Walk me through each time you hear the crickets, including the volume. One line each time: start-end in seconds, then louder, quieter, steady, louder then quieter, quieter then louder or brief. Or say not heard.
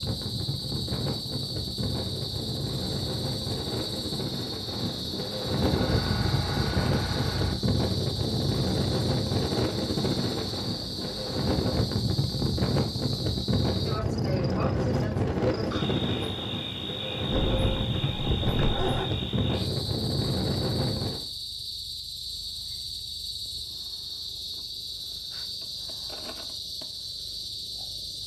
0.0-28.2 steady.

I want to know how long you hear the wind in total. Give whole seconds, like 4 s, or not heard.
21 s.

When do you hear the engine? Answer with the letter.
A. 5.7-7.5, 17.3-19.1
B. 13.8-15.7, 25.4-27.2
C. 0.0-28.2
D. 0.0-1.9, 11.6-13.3
A.